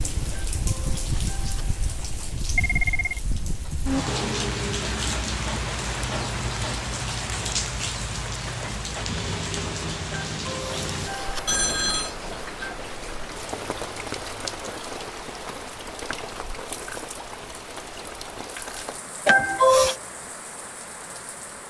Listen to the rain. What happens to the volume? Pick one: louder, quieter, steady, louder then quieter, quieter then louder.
quieter.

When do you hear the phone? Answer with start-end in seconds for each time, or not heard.
2.5-3.2, 11.4-12.2.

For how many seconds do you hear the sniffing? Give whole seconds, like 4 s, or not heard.
5 s.